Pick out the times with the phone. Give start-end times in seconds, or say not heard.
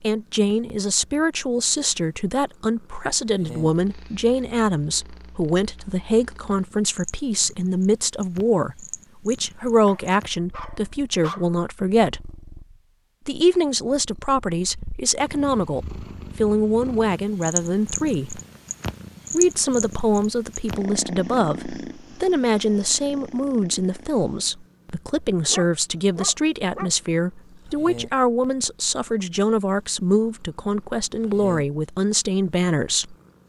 not heard.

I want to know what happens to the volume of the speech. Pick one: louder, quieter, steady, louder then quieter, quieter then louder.
steady.